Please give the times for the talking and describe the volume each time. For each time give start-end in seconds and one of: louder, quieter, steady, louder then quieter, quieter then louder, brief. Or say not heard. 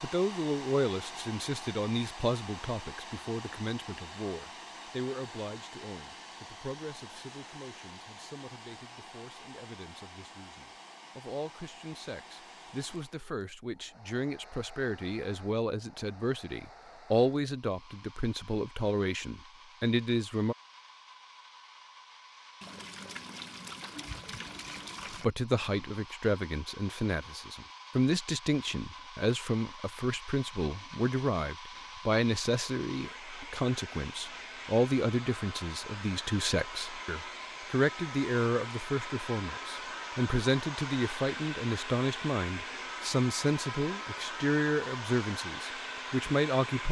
0.0-20.6 quieter then louder
25.1-46.8 steady.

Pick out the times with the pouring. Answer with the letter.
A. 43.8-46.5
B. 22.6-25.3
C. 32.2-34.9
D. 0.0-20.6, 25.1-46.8
B.